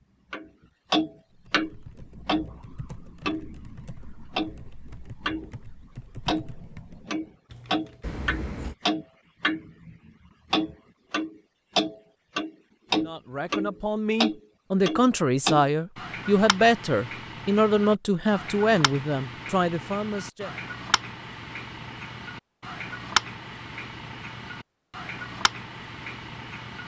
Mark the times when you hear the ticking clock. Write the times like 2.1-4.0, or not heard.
0.3-5.5, 6.2-26.8.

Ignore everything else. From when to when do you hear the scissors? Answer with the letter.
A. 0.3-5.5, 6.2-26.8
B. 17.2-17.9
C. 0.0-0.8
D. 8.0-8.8
D.